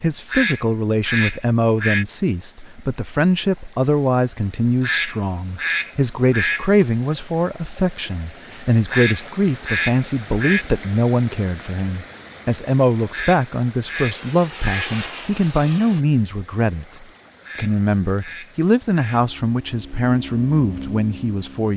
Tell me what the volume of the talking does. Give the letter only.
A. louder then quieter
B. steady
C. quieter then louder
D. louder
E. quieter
B.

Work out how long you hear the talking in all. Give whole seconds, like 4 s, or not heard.
22 s.